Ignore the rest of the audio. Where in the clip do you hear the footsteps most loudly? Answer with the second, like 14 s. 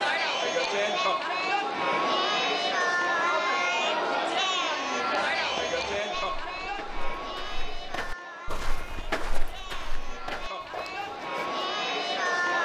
9 s.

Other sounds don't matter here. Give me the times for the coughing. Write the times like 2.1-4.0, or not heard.
not heard.